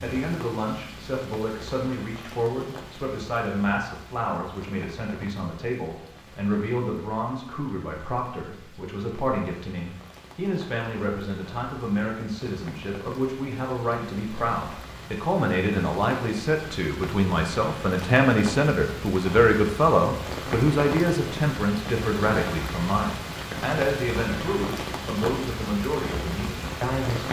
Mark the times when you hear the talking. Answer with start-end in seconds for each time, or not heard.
0.0-27.2.